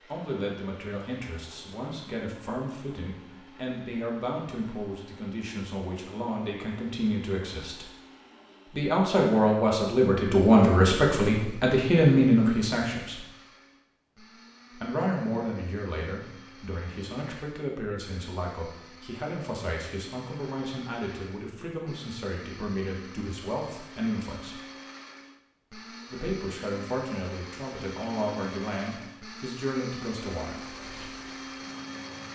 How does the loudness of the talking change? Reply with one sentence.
The volume of the talking goes up, then down.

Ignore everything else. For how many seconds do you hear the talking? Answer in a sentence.
The talking can be heard for 27 seconds in total.